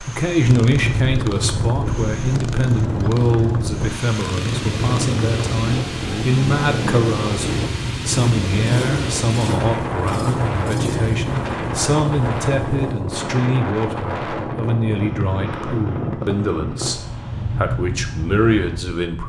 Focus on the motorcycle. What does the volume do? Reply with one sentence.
The loudness of the motorcycle stays about the same.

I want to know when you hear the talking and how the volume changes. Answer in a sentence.
You can hear the talking from 0.1 to 19.2 s, at a steady volume.